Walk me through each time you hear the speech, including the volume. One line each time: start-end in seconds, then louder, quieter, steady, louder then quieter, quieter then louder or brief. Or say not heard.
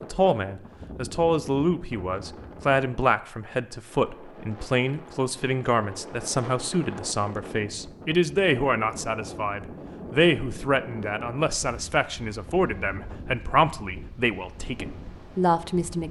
0.0-16.0 steady.